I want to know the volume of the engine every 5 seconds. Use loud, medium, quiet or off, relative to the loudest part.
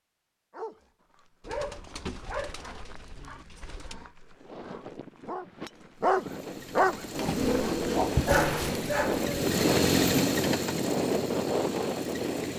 off, loud, loud.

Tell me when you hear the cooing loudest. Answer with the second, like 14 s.
8 s.